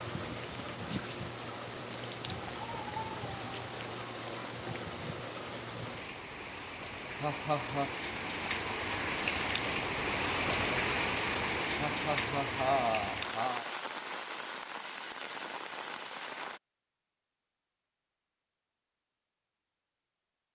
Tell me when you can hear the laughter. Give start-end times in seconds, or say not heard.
7.2-8.0, 11.8-13.7.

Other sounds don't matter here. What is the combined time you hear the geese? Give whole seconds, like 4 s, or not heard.
not heard.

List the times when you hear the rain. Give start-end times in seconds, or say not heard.
0.0-16.6.